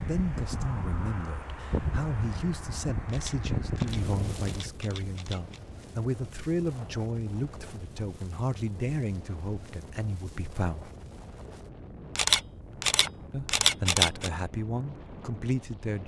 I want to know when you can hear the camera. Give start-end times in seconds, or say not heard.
3.0-5.6, 12.2-14.3.